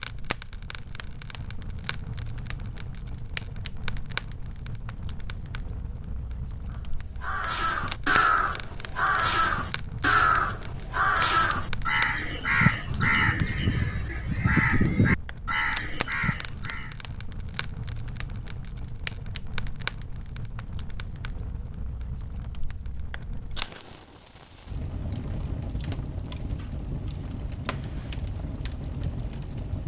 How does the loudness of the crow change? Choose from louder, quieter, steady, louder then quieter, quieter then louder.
steady.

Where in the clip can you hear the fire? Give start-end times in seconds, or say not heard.
0.0-29.8.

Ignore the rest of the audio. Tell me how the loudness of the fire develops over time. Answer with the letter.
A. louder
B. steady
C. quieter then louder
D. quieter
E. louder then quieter
B.